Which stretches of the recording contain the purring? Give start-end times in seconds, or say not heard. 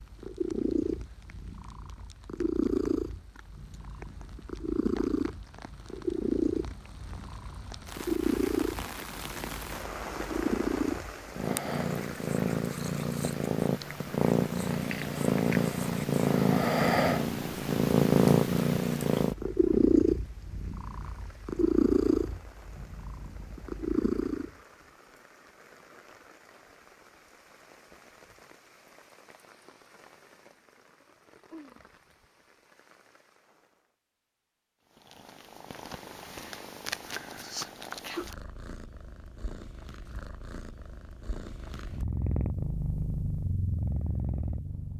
0.0-24.5, 35.0-44.9.